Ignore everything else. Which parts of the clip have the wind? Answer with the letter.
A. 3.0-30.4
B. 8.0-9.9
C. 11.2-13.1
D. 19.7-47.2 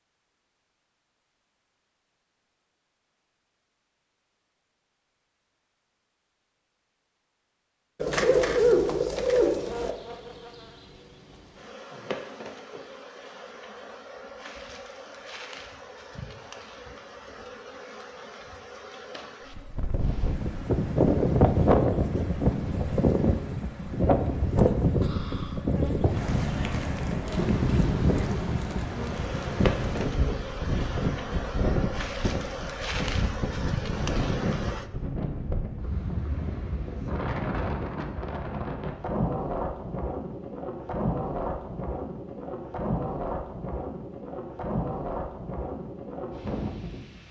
D.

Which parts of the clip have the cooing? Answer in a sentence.
The cooing can be heard from 8.0 to 9.9 s.